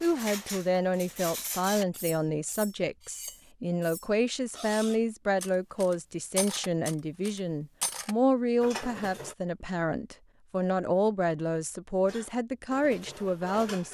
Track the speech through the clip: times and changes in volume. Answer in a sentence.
You can hear the speech from 0.0 to 13.8 s, at a steady volume.